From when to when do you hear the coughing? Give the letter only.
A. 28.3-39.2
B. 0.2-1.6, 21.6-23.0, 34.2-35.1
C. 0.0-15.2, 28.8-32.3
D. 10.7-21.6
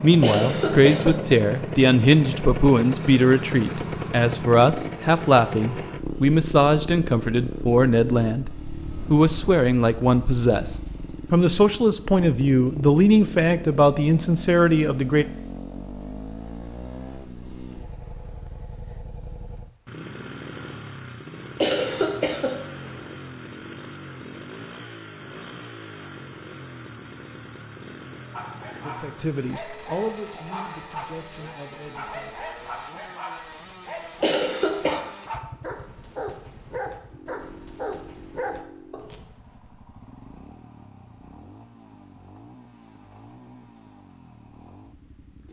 B.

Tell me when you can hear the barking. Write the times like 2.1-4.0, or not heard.
28.3-39.2.